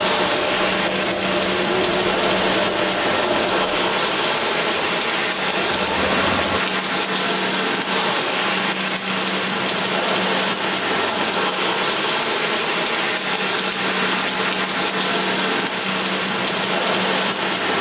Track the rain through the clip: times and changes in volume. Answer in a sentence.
The rain can be heard from 0.0 to 17.7 s, at a steady volume.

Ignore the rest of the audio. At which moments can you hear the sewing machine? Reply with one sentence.
You can hear the sewing machine from 0.0 to 6.6 s.